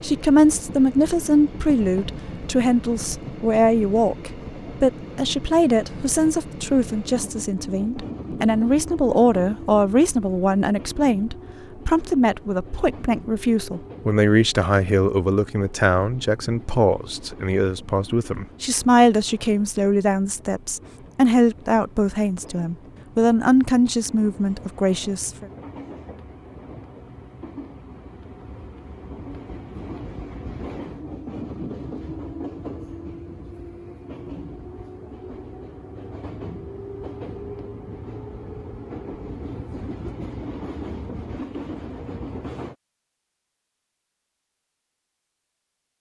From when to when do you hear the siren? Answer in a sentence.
You can't hear the siren here.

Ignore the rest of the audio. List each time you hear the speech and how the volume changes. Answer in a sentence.
The speech can be heard from 0.0 to 25.4 s, at a steady volume.